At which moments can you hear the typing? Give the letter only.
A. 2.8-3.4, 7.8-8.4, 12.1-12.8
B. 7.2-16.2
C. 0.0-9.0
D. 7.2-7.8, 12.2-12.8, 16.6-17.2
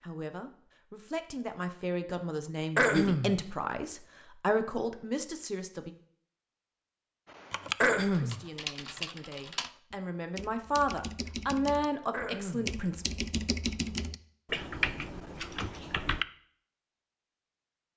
B.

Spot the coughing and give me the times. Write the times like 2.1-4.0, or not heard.
2.8-3.4, 7.8-8.4, 12.1-12.8.